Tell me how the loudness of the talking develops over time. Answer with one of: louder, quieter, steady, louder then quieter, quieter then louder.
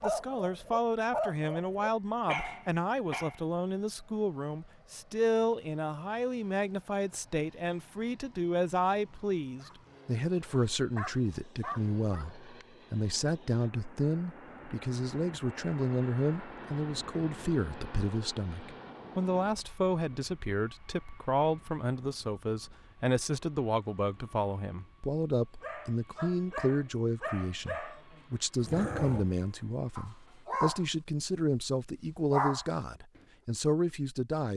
steady.